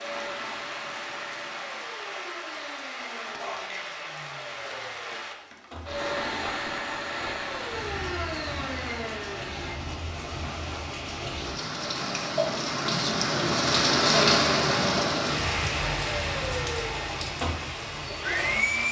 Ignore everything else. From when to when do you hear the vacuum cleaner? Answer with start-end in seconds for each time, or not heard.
0.0-9.8, 15.7-18.8.